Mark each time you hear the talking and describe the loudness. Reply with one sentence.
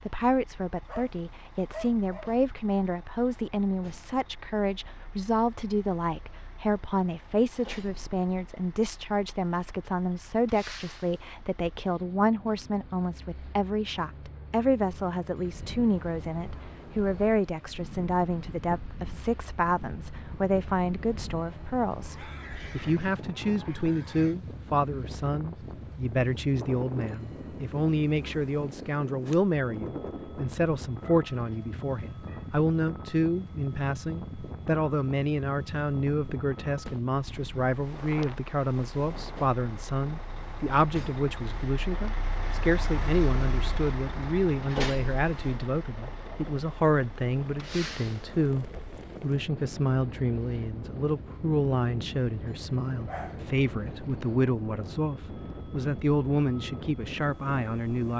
The talking can be heard from 0.1 to 58.1 s, at a steady volume.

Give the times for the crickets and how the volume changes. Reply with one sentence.
You can't hear the crickets here.